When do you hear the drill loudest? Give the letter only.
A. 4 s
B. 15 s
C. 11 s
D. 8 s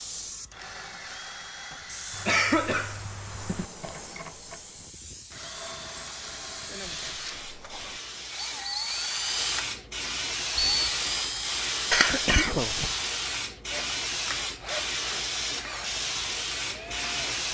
C.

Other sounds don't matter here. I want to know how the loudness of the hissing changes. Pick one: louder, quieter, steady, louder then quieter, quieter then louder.
louder.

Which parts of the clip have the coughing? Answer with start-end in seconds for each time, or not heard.
1.7-3.6, 11.9-12.9.